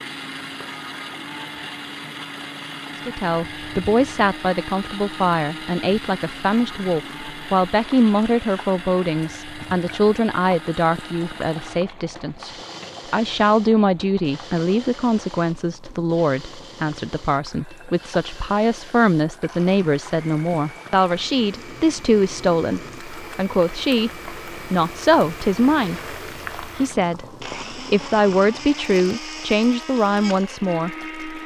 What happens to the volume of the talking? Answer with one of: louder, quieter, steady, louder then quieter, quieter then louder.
steady.